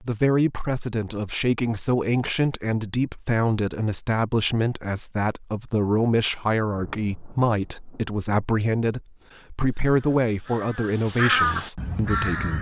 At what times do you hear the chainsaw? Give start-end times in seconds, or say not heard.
not heard.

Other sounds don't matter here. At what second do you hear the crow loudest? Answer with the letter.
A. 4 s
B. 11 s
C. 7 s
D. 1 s
B.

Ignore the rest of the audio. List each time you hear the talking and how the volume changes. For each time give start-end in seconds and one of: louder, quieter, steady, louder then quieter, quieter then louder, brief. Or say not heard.
0.0-12.5 steady.